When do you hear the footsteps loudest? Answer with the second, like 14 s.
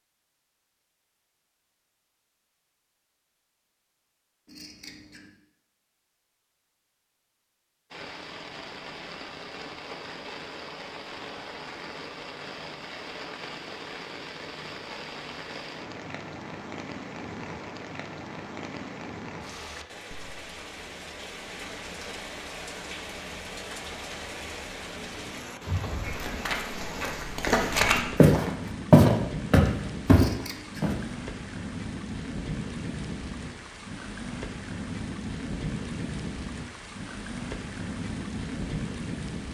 29 s.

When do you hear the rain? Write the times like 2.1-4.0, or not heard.
7.9-39.4.